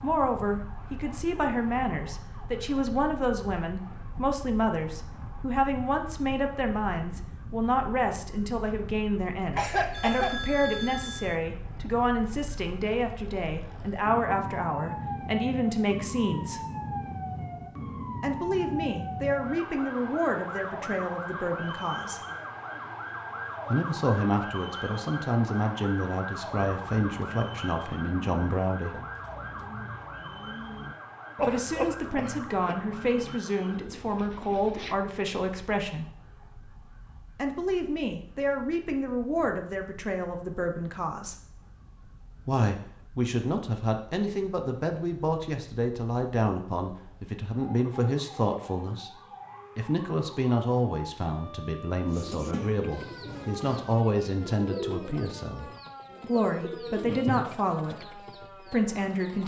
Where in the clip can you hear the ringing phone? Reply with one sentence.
The ringing phone can be heard from 9.9 to 11.4 s.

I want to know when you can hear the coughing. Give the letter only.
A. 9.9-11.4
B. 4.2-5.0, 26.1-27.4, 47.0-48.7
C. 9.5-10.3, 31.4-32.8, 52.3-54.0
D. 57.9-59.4
C.